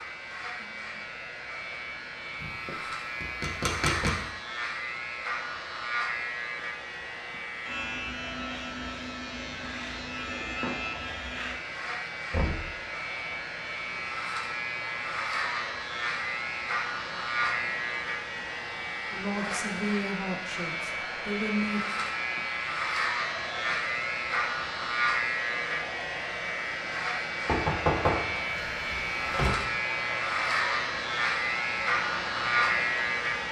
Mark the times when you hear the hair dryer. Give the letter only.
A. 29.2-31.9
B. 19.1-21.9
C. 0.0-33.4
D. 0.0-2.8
C.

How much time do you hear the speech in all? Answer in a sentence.
You can hear the speech for 3 seconds altogether.